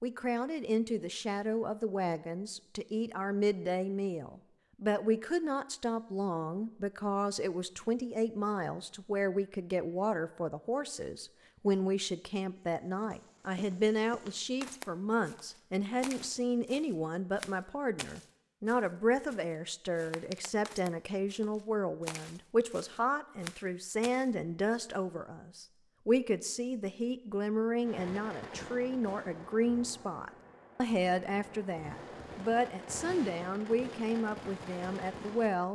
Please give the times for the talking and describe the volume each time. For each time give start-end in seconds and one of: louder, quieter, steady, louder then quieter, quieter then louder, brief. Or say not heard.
0.0-35.7 steady.